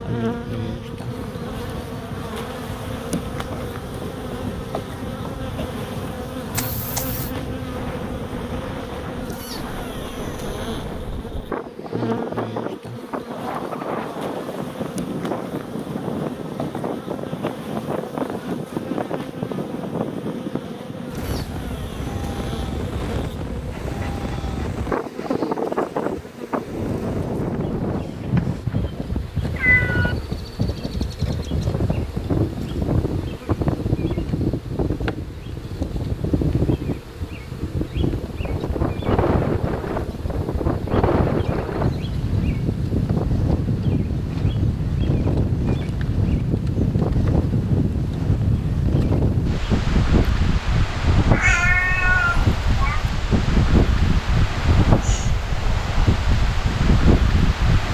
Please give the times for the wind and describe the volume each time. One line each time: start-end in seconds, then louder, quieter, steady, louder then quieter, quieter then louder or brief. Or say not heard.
0.2-57.8 louder.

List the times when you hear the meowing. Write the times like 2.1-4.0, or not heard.
6.5-7.3, 28.1-30.1, 51.3-53.0.